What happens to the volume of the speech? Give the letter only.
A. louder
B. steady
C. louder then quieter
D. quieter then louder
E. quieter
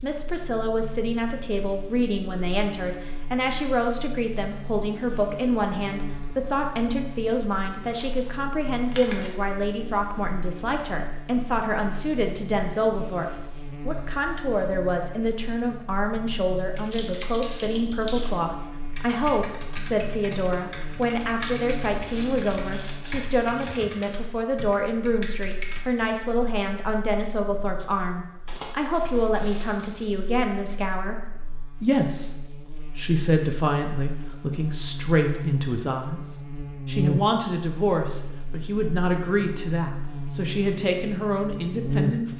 B.